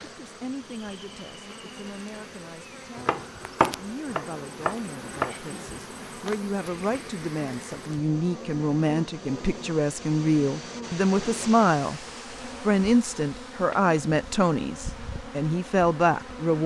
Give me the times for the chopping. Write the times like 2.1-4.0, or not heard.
3.0-5.3.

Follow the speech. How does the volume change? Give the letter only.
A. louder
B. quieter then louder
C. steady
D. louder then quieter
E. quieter
A.